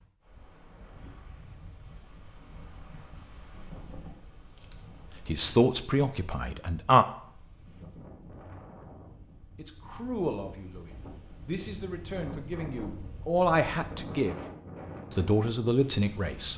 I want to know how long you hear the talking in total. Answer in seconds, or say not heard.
8 s.